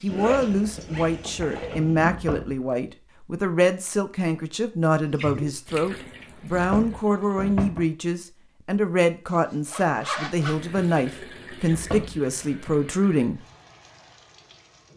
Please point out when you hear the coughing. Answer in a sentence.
The coughing can't be heard in this clip.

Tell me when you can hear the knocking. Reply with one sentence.
The knocking can be heard from 2.1 to 2.5 s, from 6.5 to 7.8 s and from 11.7 to 12.2 s.